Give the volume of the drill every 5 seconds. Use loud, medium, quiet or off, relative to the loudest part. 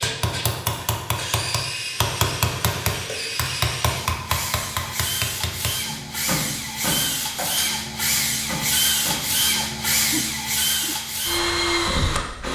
medium, loud, loud.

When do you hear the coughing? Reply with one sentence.
You can hear the coughing from 9.9 to 11.0 s.